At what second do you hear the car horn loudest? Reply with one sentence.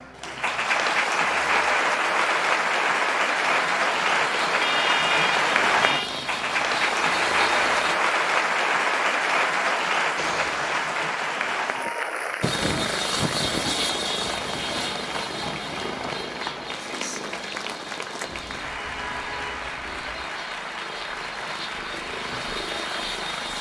The loudest moment of the car horn is at 5 seconds.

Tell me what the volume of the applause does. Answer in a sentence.
The loudness of the applause goes down.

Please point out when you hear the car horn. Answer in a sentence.
You can hear the car horn from 4.5 to 6.1 s, from 10.2 to 10.9 s and from 18.2 to 20.2 s.